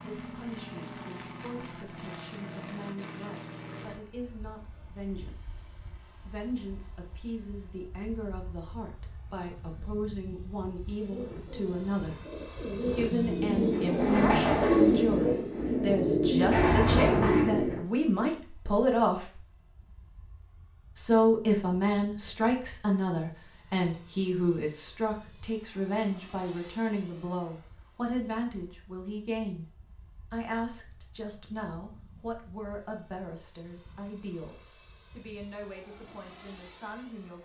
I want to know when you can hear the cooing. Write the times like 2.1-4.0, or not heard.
10.9-17.8.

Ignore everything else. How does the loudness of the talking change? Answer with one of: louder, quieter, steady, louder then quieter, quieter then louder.
louder then quieter.